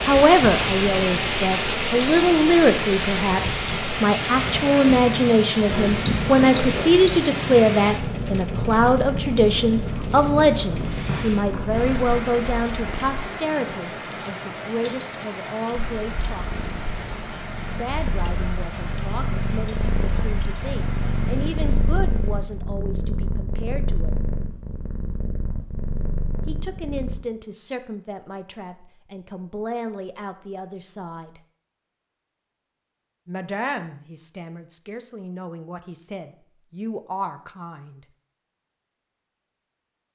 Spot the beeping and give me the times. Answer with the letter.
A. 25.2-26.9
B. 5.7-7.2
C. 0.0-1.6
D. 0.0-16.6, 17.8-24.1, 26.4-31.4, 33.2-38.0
B.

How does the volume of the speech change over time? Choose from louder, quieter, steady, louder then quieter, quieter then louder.
quieter.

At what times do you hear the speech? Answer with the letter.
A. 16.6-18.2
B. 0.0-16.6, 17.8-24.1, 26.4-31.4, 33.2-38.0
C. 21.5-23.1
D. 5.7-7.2
B.